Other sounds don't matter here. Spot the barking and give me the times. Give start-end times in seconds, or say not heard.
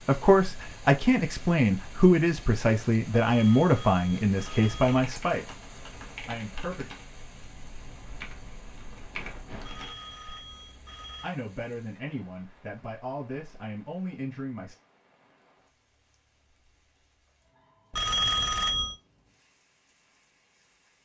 not heard.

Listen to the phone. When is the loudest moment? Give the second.
18 s.